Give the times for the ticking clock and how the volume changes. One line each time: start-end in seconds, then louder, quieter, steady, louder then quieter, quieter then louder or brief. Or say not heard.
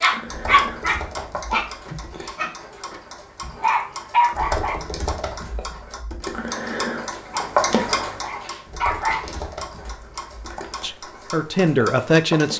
0.0-12.5 louder then quieter.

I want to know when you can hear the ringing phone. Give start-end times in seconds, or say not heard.
not heard.